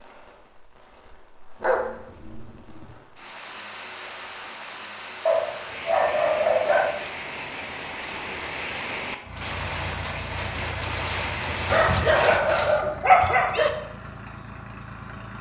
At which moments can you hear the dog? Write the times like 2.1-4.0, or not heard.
1.6-3.0, 5.2-7.0, 11.7-13.7.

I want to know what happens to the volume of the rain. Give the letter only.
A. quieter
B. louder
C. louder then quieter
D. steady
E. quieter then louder
B.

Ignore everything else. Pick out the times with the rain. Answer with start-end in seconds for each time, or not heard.
0.0-12.8.